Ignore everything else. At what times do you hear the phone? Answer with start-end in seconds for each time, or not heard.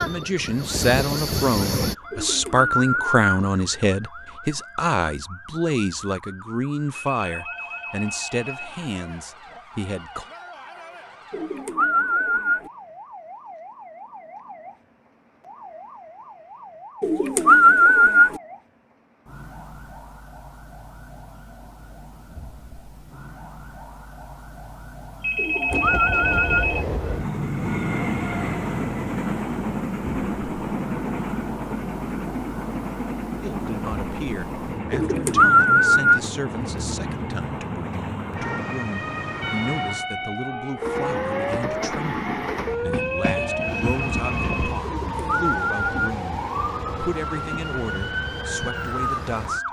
7.1-8.8, 25.2-26.9, 43.0-44.8.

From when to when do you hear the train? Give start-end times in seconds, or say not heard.
0.0-1.9, 25.7-44.8.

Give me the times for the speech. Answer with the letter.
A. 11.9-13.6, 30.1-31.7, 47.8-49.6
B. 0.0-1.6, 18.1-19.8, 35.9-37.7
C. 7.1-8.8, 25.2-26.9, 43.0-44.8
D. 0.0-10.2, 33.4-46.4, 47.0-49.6
D.